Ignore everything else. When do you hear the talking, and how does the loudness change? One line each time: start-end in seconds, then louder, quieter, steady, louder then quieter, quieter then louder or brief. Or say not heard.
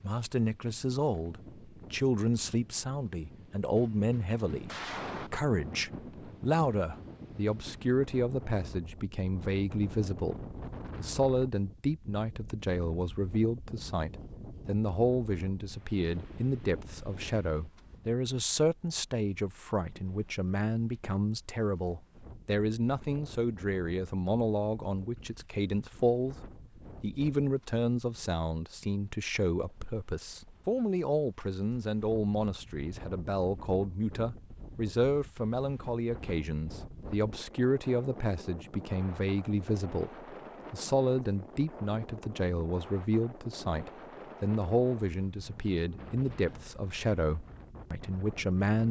0.0-48.8 steady.